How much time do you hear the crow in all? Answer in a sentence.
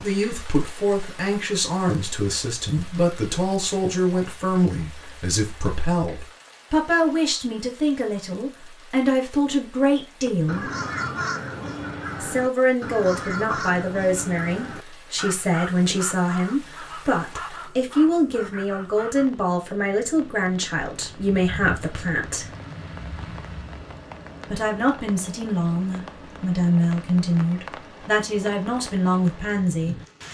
The crow can be heard for 9 seconds in total.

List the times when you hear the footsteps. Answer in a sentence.
The footsteps can't be heard in this clip.